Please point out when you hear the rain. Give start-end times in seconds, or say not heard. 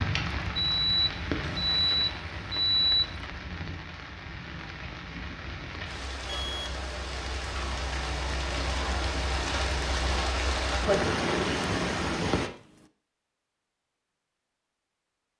0.0-12.5.